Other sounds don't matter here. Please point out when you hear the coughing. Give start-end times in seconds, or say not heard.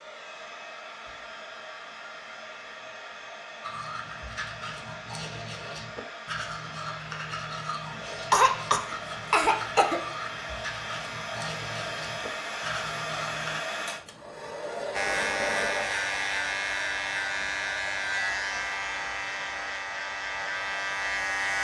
8.1-10.0.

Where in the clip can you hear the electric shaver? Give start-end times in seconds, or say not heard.
14.9-21.5.